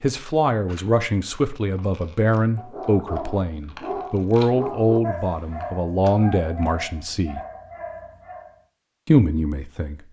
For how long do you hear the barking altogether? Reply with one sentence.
The barking can be heard for 6 seconds in total.